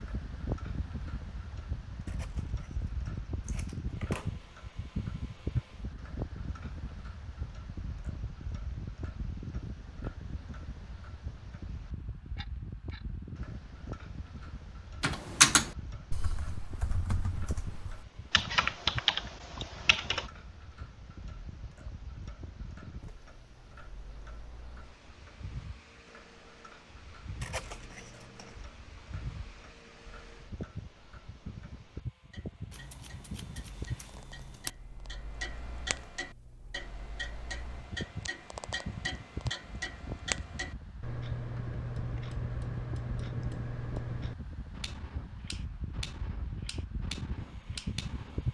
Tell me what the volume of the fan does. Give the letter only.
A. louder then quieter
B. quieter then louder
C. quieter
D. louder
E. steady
B.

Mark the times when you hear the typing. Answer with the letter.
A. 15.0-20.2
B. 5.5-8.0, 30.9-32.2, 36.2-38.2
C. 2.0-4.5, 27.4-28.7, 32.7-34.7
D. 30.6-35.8
A.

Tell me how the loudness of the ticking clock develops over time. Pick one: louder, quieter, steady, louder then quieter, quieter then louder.
louder.